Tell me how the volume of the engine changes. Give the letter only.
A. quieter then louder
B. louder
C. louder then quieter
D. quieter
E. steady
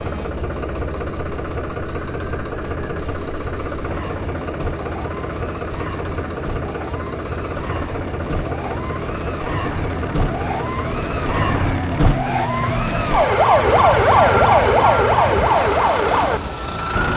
E.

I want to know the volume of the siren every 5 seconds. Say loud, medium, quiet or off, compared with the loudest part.
quiet, quiet, loud, loud.